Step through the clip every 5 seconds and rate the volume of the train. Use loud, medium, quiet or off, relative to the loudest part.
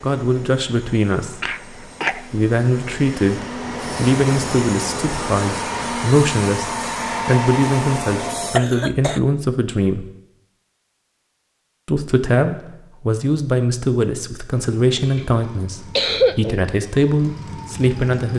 medium, loud, off, off.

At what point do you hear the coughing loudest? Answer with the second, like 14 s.
16 s.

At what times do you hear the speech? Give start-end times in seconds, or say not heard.
0.0-10.1, 11.8-18.3.